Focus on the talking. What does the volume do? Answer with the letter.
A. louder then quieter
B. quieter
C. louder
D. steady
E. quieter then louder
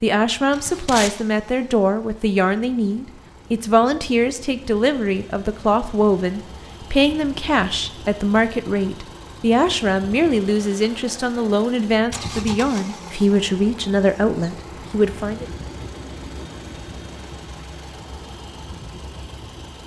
D.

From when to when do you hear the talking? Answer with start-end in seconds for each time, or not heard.
0.0-15.4.